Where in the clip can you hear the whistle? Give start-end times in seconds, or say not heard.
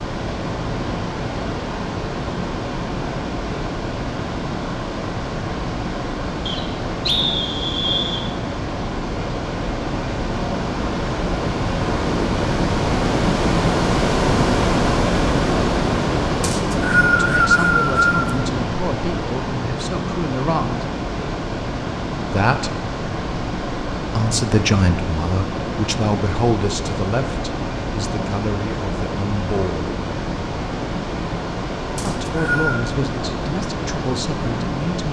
6.5-8.2, 16.4-18.3, 31.9-32.8.